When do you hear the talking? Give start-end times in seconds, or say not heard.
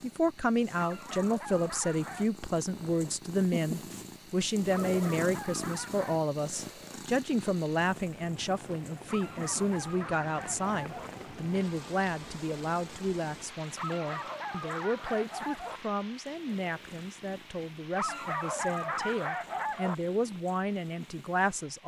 0.0-21.8.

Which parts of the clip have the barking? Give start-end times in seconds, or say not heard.
0.8-2.3, 4.7-6.2, 9.1-11.1, 13.8-15.8, 17.9-19.9.